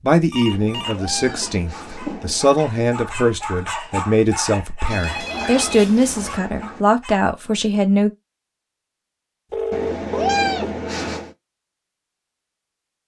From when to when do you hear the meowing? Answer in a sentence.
You can hear the meowing from 0.5 to 2.5 s, from 5.0 to 6.8 s and from 9.7 to 11.3 s.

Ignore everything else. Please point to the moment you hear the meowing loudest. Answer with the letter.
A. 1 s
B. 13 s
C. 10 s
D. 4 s
C.